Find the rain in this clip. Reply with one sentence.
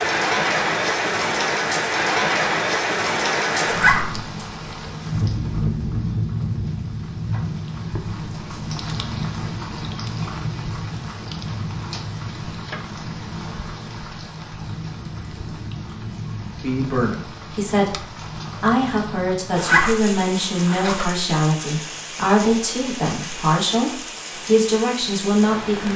You can hear the rain from 0.0 to 25.9 s.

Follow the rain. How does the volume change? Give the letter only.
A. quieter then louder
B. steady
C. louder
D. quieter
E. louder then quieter
D.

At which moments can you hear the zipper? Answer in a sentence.
The zipper can be heard from 3.6 to 4.2 s and from 19.5 to 21.2 s.